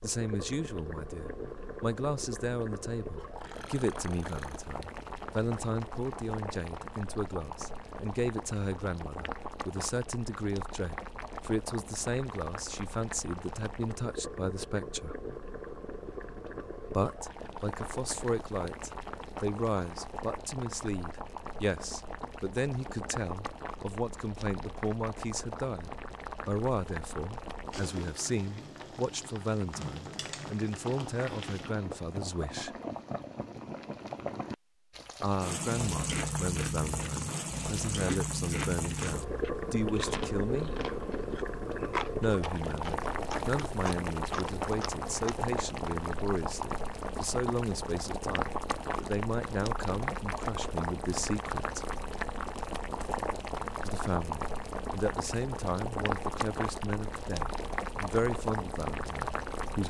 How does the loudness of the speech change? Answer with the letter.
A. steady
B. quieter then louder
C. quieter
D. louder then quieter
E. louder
A.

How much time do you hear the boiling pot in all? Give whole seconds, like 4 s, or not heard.
60 s.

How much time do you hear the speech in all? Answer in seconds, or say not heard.
52 s.